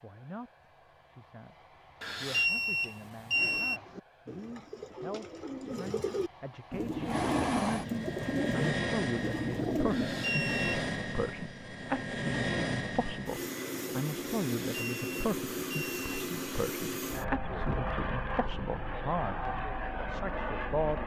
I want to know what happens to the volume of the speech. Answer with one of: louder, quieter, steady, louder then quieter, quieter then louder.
louder.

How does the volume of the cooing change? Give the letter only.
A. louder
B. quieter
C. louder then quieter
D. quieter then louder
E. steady
A.